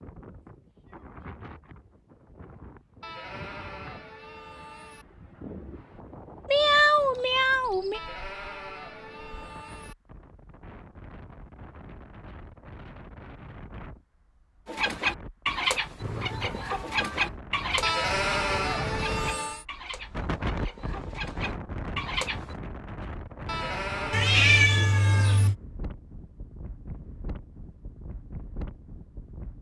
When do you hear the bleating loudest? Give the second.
18 s.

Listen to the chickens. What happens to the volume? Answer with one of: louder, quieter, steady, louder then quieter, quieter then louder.
quieter then louder.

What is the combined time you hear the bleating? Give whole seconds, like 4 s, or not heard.
8 s.